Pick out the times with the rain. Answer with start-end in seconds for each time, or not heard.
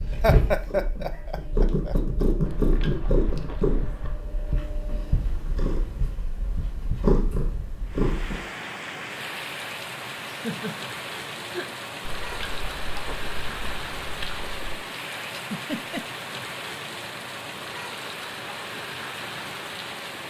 7.8-20.2.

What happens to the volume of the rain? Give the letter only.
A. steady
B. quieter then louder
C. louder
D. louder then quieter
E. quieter
A.